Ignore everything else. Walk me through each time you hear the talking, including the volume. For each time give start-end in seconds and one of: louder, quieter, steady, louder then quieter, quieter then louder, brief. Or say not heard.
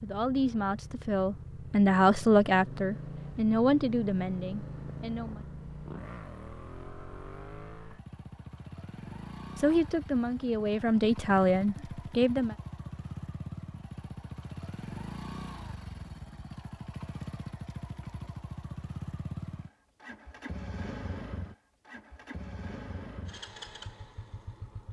0.0-5.4 louder then quieter
9.6-12.6 brief.